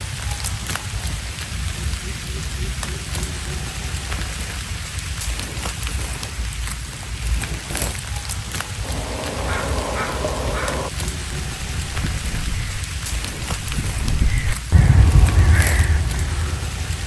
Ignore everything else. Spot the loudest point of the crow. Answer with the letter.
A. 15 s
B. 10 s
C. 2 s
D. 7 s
A.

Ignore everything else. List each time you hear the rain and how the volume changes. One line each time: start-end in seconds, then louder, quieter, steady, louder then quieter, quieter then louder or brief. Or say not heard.
0.0-17.0 steady.